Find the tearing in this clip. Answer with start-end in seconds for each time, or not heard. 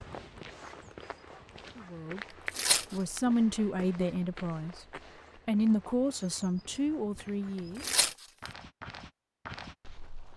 2.5-3.2, 7.8-8.5.